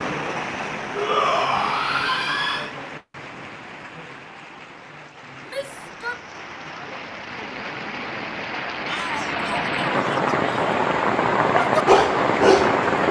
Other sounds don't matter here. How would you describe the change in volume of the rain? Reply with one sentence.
The volume of the rain goes down, then up.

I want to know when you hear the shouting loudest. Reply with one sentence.
The volume of the shouting peaks at 1 second.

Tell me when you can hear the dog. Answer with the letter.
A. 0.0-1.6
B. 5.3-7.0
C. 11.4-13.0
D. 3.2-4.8
C.